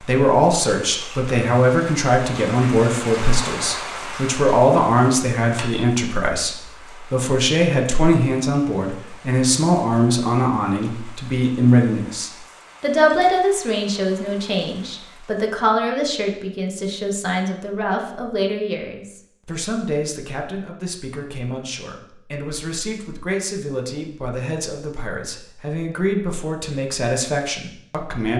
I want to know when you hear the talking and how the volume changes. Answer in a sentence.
The talking can be heard from 0.0 to 28.3 s, getting quieter.